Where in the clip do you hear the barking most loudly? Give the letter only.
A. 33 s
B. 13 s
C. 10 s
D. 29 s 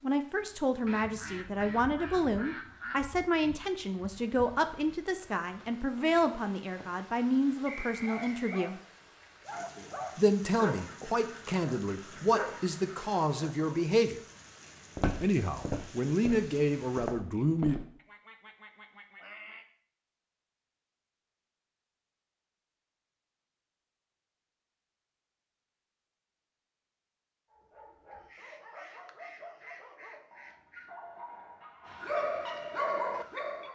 A.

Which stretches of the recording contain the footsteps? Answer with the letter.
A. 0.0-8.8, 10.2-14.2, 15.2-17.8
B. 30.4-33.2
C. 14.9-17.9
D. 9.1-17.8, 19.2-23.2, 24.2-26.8
C.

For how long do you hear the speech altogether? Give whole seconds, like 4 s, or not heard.
15 s.